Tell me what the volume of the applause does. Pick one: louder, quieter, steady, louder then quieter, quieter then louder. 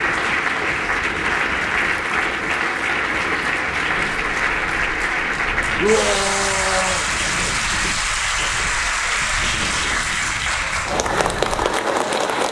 steady.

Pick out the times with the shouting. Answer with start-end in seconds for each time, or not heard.
5.8-7.0.